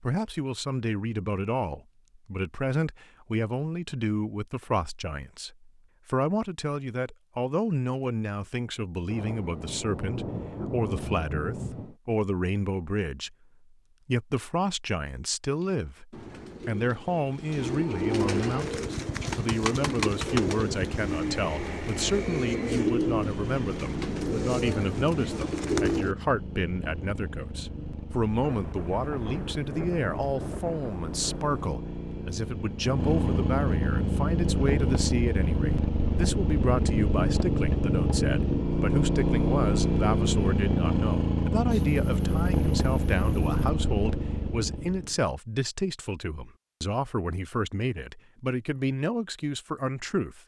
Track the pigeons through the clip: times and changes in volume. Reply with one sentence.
You can hear the pigeons from 15.6 to 26.1 s, getting louder.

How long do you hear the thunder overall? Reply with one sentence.
The thunder can be heard for 8 seconds in total.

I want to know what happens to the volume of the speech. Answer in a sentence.
The loudness of the speech stays about the same.